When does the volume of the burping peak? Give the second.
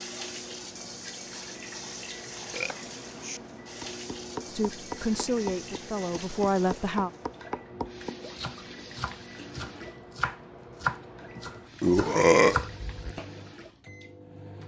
12 s.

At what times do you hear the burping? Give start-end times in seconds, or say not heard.
2.5-3.4, 11.3-13.2.